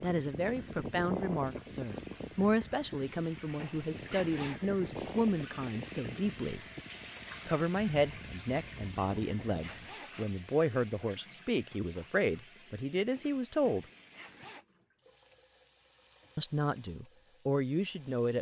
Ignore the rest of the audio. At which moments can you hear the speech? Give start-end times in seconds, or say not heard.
0.0-6.6, 7.5-13.8, 16.4-18.3.